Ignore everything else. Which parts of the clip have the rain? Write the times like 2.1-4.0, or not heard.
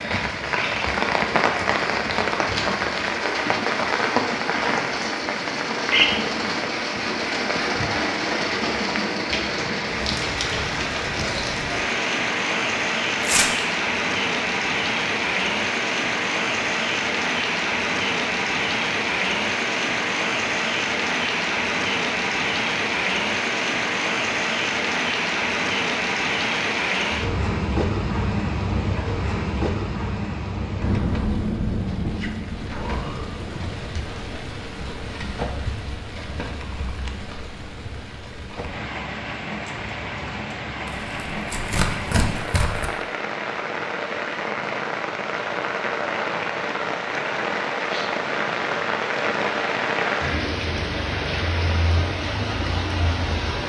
0.0-53.6.